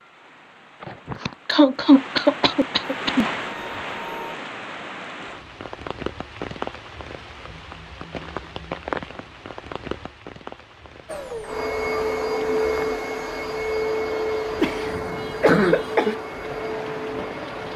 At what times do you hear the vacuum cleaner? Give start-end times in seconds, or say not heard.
2.8-4.4, 11.1-17.7.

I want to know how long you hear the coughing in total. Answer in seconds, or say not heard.
4 s.